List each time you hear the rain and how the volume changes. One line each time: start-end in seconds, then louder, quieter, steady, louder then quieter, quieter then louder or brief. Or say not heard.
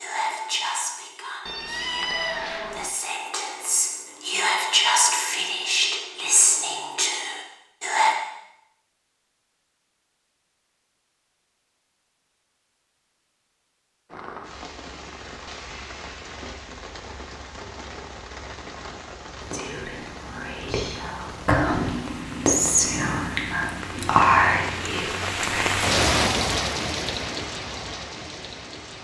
14.1-28.9 louder.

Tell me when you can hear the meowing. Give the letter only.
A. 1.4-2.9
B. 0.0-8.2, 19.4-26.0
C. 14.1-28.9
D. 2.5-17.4
A.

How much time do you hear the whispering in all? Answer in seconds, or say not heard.
15 s.